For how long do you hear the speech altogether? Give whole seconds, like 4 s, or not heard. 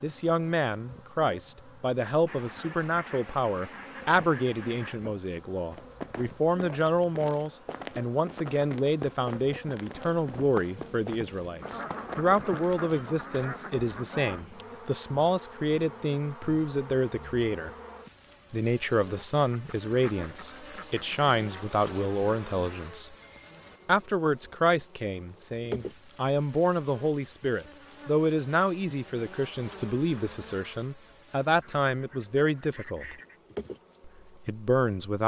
33 s.